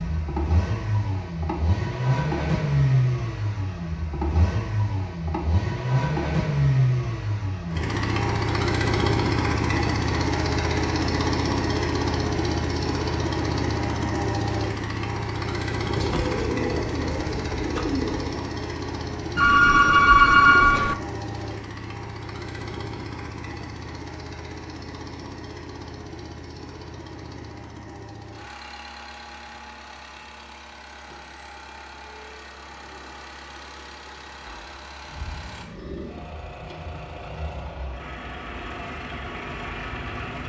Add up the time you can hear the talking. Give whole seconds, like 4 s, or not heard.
not heard.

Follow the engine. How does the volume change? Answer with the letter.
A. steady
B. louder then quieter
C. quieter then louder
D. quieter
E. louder
D.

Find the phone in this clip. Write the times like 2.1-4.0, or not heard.
19.4-20.9.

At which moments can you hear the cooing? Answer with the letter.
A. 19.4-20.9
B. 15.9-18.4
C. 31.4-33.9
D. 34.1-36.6
B.